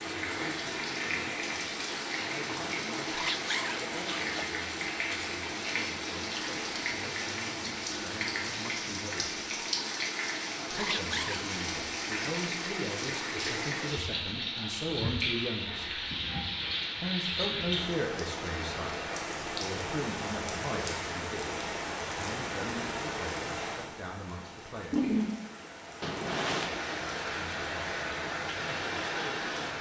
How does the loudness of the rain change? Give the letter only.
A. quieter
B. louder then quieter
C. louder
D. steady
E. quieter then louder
D.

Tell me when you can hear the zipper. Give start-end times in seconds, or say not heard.
3.1-4.4, 10.7-11.4, 26.0-26.8.